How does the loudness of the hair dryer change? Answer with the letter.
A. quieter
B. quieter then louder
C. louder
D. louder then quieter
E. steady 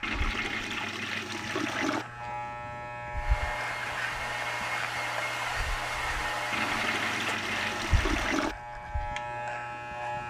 E.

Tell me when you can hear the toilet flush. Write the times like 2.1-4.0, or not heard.
0.0-2.0, 6.5-8.6.